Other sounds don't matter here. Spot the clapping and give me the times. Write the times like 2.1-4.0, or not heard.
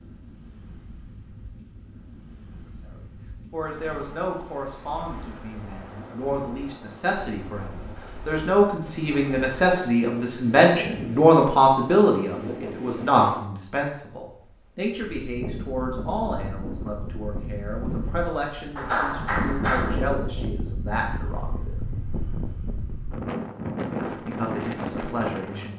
18.8-20.0.